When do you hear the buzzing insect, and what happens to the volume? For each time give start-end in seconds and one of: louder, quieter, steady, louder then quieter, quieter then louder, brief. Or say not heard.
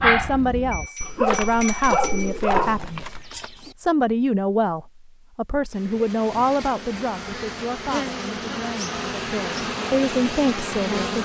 5.7-11.2 louder.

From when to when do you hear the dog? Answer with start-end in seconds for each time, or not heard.
0.0-3.3.